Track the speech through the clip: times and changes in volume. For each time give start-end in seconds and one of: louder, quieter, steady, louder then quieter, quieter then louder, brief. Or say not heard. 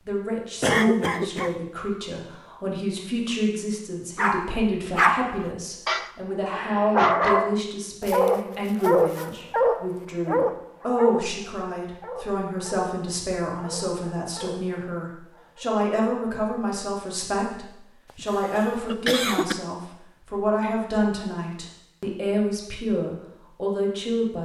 0.1-24.4 steady.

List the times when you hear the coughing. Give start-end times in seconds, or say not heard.
0.6-1.6, 18.1-19.6.